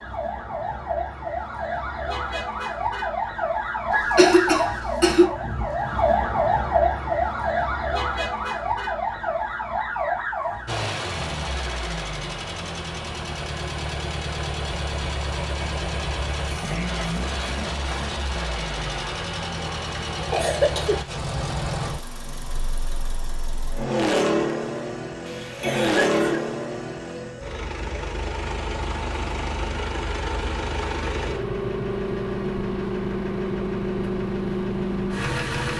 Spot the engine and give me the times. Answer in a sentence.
You can hear the engine from 10.7 to 35.7 s.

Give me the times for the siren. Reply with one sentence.
You can hear the siren from 0.0 to 10.9 s.